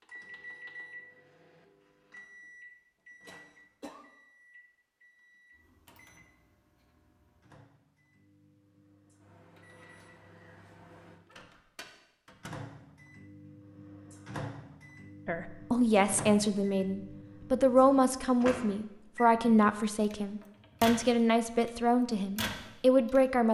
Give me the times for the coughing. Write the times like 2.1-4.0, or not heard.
3.2-4.0.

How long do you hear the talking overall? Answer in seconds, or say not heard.
8 s.